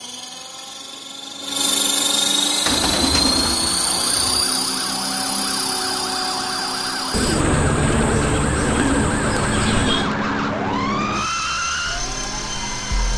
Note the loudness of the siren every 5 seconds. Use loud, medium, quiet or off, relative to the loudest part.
medium, loud, loud.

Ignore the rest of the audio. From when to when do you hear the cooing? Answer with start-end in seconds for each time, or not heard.
2.6-4.5, 7.1-10.1.